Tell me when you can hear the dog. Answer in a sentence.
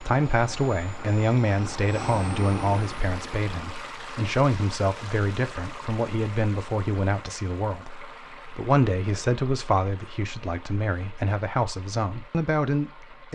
The dog can't be heard in this clip.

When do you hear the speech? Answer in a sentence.
You can hear the speech from 0.0 to 13.3 s.